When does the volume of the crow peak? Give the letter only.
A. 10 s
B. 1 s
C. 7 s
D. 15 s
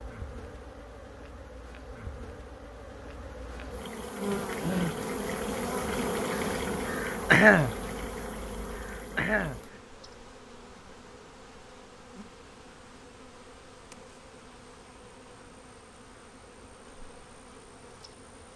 C.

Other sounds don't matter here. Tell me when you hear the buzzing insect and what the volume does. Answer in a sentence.
You can hear the buzzing insect from 0.0 to 18.5 s, getting louder then quieter.